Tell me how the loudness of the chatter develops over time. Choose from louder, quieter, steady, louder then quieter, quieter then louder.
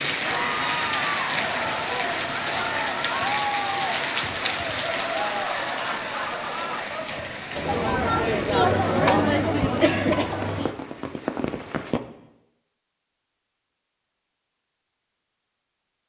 louder.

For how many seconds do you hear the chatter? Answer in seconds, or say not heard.
11 s.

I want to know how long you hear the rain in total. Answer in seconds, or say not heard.
12 s.